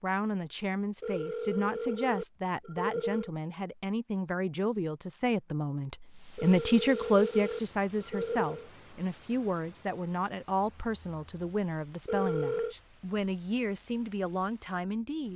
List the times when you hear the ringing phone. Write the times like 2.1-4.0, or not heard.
1.0-3.3, 6.3-8.7, 12.1-12.8.